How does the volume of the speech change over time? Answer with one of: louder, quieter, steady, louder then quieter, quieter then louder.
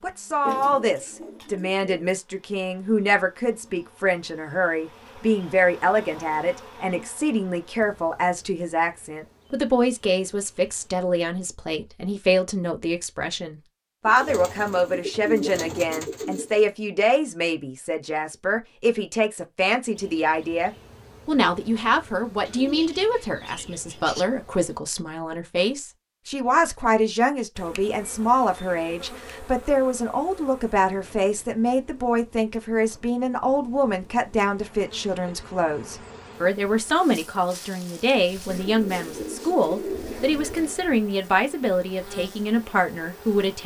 steady.